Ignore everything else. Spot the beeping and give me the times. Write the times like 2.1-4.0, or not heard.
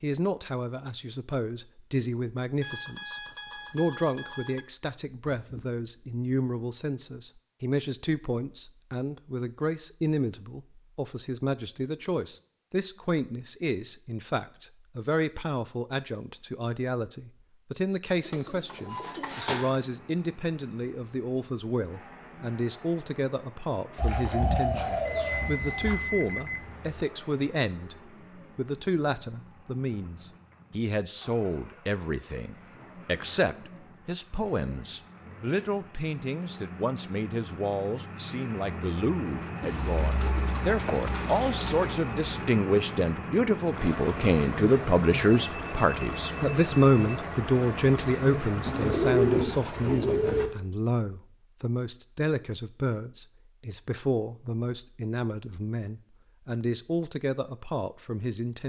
2.6-4.7, 25.1-27.1, 45.2-47.2.